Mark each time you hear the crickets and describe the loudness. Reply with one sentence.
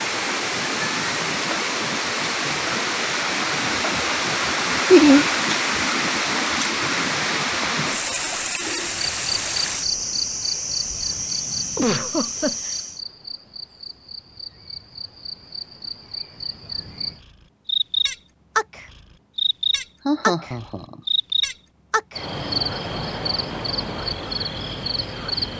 The crickets can be heard from 8.7 to 25.5 s, getting quieter then louder.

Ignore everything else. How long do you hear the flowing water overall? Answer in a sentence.
You can hear the flowing water for 13 seconds altogether.